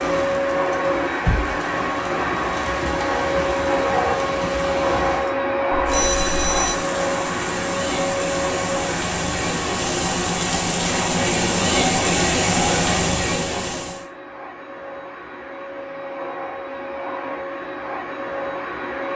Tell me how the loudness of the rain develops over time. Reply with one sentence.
The loudness of the rain goes up.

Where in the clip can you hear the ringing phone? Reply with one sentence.
The ringing phone can be heard from 5.7 to 6.8 s.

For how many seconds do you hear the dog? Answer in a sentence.
The dog can't be heard in this clip.